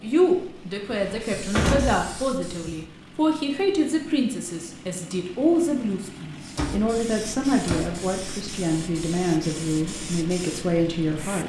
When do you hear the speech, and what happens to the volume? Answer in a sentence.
The speech can be heard from 0.0 to 11.4 s, at a steady volume.